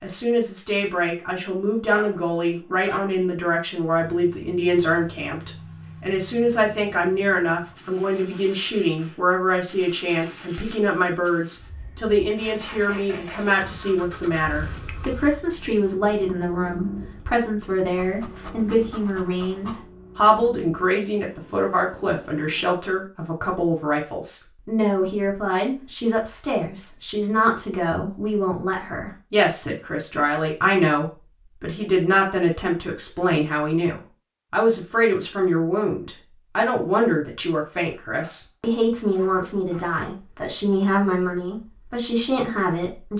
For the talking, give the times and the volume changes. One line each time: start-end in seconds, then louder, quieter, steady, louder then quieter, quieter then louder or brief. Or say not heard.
0.0-43.1 steady.